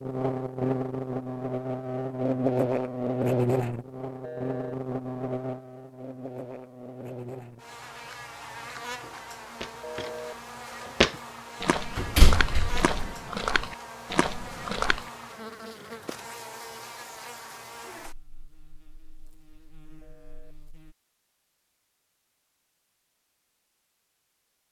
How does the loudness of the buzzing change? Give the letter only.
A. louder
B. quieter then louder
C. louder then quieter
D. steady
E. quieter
E.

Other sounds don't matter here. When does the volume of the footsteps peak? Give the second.
11 s.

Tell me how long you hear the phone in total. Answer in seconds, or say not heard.
2 s.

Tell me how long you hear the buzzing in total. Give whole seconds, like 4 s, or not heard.
21 s.